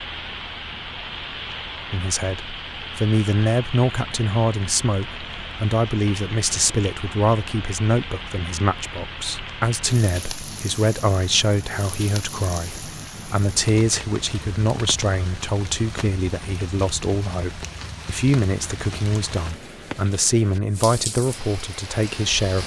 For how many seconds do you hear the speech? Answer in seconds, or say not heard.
21 s.